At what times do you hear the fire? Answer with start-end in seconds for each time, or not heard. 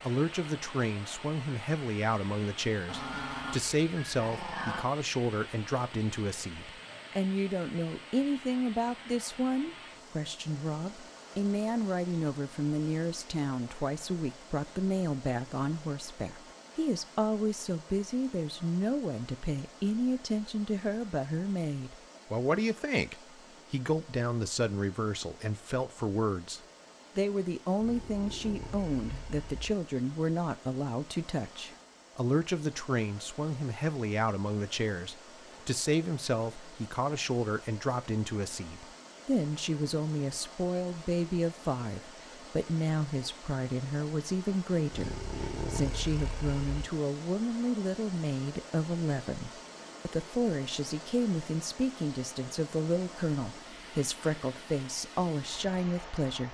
not heard.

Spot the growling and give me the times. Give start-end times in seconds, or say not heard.
2.9-4.8, 27.8-29.8, 44.9-46.9.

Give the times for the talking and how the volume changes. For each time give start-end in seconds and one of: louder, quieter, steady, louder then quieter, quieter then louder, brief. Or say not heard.
0.0-56.4 steady.